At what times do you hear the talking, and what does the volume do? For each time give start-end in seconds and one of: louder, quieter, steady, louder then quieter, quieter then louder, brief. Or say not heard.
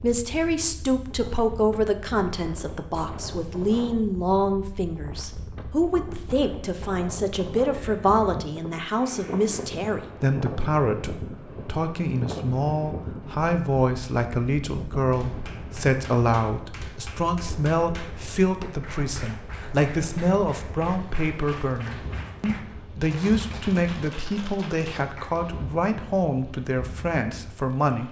0.0-28.0 steady.